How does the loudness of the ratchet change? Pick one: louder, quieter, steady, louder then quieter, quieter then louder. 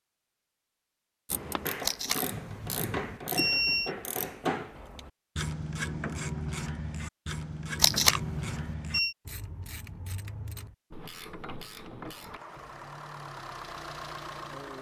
quieter.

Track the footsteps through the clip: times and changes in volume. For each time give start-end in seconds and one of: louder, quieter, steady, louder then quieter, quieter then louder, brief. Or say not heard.
not heard.